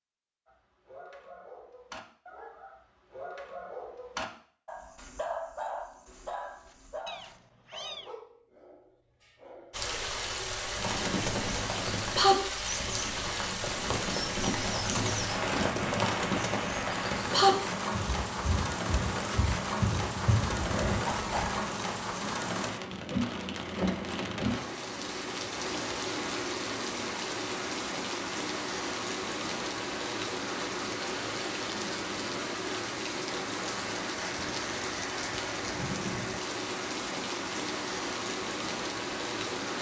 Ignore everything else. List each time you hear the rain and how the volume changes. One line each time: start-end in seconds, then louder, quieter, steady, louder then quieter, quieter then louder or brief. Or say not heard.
9.7-39.7 steady.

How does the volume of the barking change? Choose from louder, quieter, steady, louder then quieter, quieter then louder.
louder then quieter.